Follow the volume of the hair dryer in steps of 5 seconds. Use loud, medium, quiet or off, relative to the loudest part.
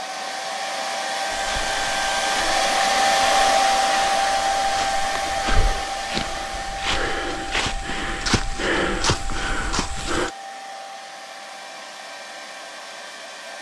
loud, medium, quiet.